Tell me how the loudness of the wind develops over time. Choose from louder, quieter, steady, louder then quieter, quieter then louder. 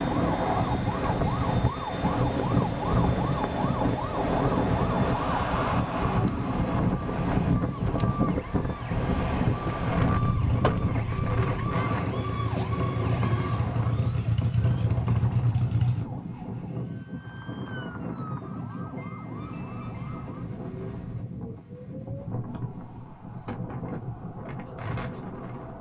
quieter.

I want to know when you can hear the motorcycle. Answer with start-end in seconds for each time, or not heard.
9.9-16.1.